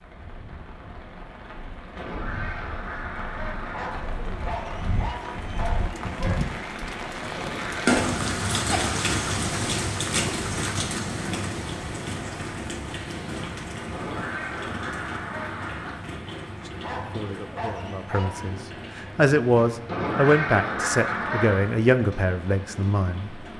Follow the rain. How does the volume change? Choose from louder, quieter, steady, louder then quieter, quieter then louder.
louder then quieter.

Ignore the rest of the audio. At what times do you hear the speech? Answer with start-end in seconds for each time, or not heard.
16.6-23.4.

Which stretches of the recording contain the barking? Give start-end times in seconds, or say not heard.
3.7-6.4, 16.8-18.6.